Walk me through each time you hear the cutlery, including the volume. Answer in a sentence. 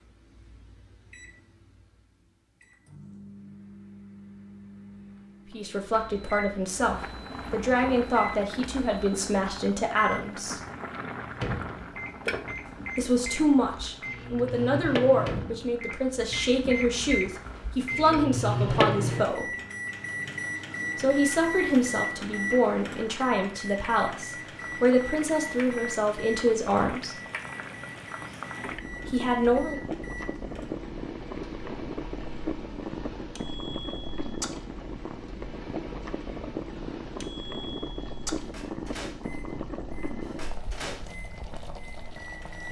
You can't hear the cutlery here.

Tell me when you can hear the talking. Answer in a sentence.
The talking can be heard from 5.5 to 10.6 s, from 12.9 to 19.5 s, from 20.9 to 27.2 s and from 29.1 to 29.8 s.